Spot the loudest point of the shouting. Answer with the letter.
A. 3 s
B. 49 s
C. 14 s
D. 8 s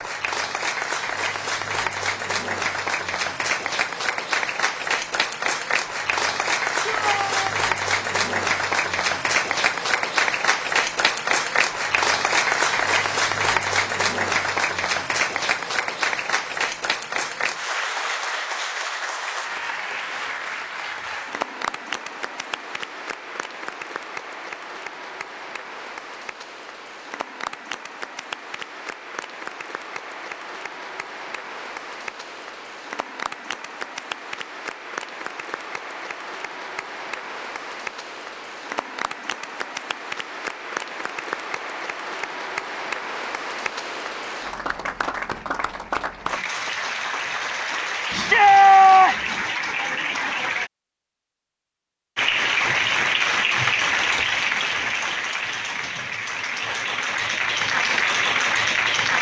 B.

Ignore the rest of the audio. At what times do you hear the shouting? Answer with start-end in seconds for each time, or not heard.
6.8-7.5, 48.1-49.4.